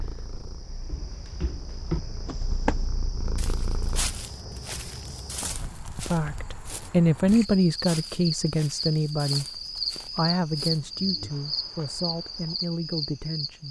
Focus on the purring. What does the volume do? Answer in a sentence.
The volume of the purring goes up.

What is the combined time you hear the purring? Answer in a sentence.
You can hear the purring for 4 seconds altogether.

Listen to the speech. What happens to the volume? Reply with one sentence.
The volume of the speech goes down.